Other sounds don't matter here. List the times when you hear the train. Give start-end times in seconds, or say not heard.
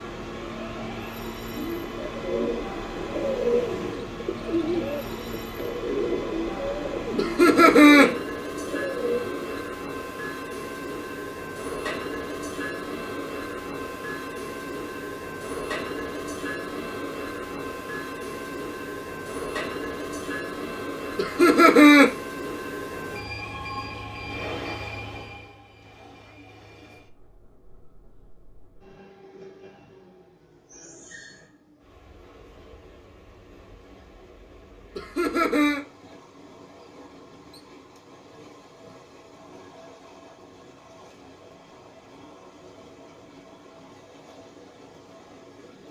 0.0-45.8.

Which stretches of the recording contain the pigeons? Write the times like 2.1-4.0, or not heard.
1.6-9.4.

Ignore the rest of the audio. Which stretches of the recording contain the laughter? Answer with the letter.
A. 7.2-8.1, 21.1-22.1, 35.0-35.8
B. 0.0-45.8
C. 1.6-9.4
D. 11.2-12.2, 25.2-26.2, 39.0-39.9
A.